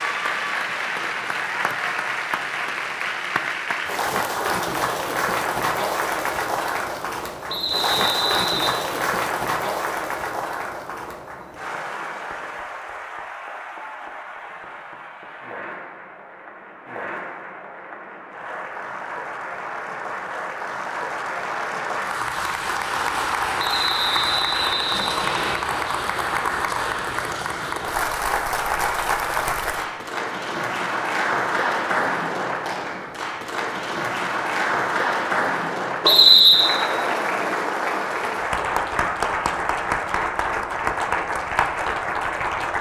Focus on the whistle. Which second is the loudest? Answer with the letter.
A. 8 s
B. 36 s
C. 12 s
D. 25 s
B.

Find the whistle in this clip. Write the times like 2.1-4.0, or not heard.
7.5-8.8, 23.6-25.6, 36.0-36.7.